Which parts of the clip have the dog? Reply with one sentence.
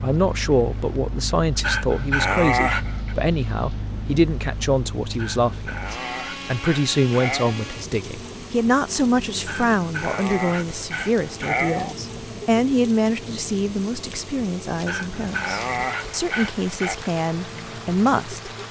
The dog can be heard from 1.6 to 3.1 s, from 5.1 to 7.5 s, from 9.4 to 11.9 s and from 14.8 to 16.9 s.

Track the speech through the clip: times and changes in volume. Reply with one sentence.
You can hear the speech from 0.0 to 18.5 s, at a steady volume.